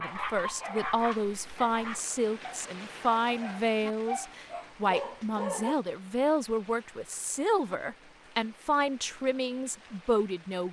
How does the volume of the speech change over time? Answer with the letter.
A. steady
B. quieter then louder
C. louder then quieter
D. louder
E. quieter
A.